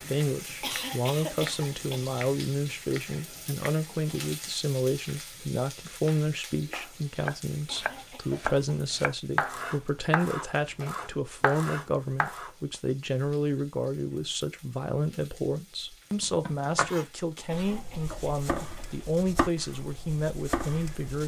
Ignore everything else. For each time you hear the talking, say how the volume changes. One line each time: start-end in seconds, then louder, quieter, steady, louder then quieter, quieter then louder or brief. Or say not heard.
0.1-21.2 steady.